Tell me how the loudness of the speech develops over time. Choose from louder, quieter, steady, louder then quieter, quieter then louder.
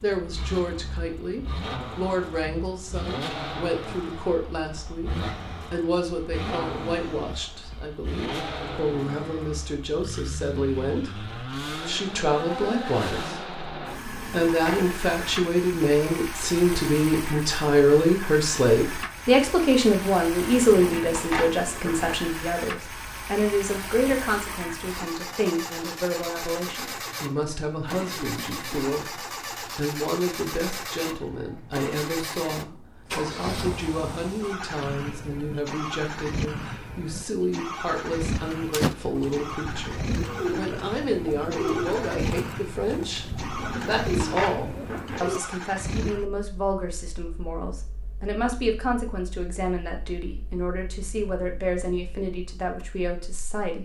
louder then quieter.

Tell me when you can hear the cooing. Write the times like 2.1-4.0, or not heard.
38.5-45.4.